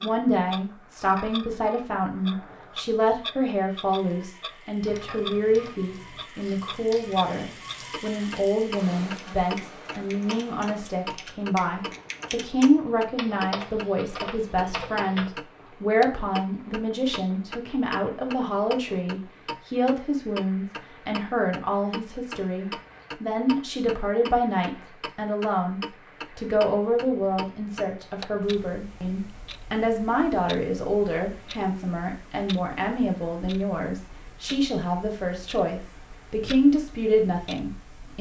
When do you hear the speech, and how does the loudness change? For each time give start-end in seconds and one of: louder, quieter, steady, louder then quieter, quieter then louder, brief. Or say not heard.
0.0-38.1 steady.